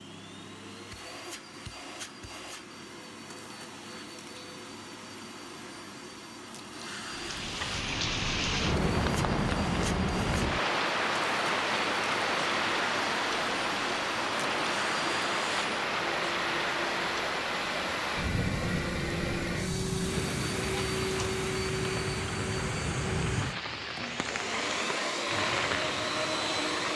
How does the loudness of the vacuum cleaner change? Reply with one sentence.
The volume of the vacuum cleaner goes up.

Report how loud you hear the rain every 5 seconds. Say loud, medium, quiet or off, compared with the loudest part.
off, loud, loud, loud, medium, medium.